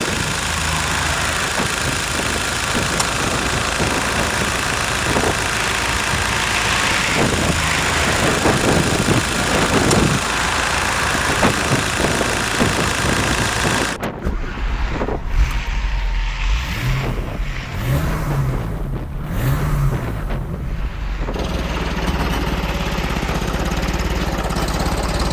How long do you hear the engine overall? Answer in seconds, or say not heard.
25 s.